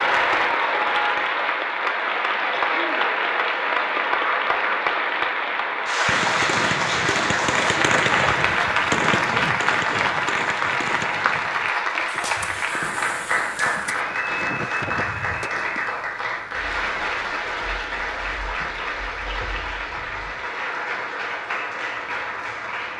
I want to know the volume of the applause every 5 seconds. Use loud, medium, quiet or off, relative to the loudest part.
loud, loud, loud, medium, medium.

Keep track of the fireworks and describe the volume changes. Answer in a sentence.
The loudness of the fireworks goes down.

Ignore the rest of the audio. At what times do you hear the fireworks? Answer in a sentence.
You can hear the fireworks from 6.0 to 15.9 s.